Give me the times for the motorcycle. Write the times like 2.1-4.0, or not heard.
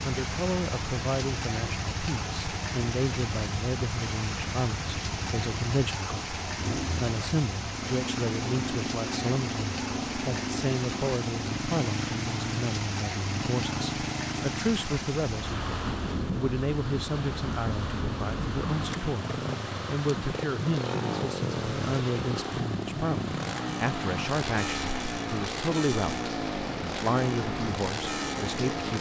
0.0-28.9.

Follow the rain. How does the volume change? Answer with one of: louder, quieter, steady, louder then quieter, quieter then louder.
steady.